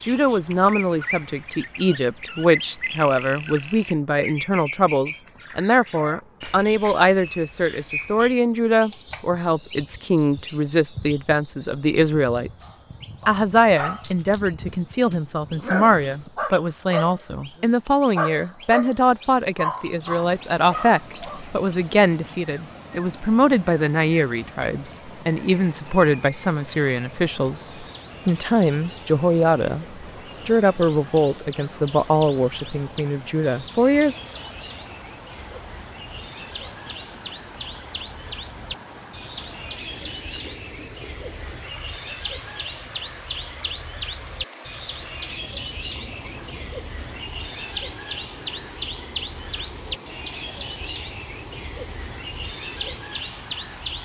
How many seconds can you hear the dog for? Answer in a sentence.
You can hear the dog for 9 seconds altogether.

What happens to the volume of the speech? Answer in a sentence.
The volume of the speech stays about the same.